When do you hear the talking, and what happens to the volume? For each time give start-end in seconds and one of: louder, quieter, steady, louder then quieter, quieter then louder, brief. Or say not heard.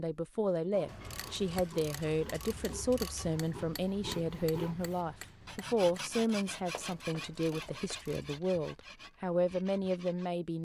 0.0-10.5 steady.